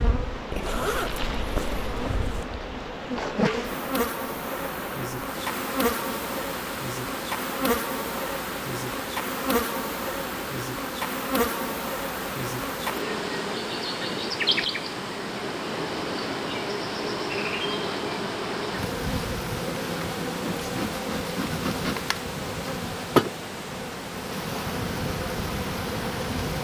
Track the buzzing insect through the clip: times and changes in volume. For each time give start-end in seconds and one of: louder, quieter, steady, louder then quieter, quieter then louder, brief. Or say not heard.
0.0-26.6 steady.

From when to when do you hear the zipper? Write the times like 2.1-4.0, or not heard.
0.5-2.5.